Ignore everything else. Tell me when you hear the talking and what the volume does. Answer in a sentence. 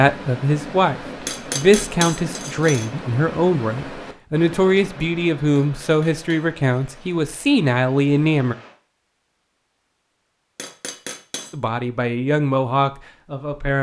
The talking can be heard from 0.0 to 8.6 s, at a steady volume; and briefly from 11.5 to 13.7 s.